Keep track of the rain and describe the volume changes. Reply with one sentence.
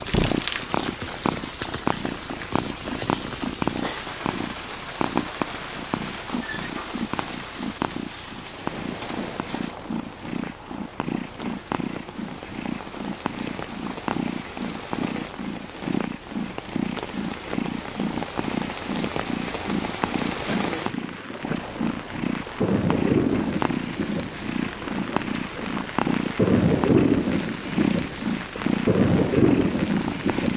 The volume of the rain goes down, then up.